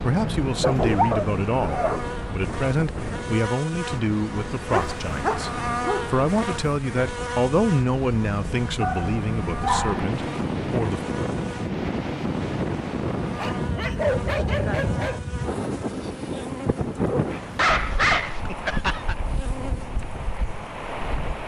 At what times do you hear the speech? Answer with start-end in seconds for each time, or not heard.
0.0-11.0.